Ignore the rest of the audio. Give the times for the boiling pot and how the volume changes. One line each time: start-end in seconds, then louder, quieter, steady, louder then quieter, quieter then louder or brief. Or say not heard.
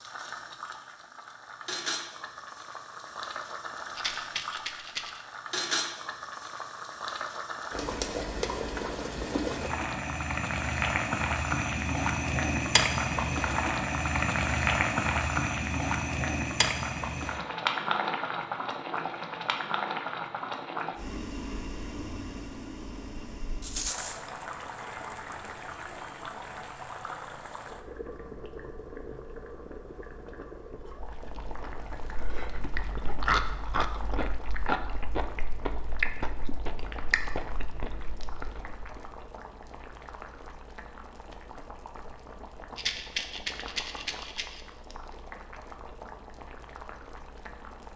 0.0-47.9 louder then quieter.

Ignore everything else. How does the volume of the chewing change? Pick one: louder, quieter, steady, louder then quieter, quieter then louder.
louder then quieter.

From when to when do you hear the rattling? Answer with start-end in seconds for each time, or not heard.
4.0-5.1, 23.6-24.2, 42.8-44.6.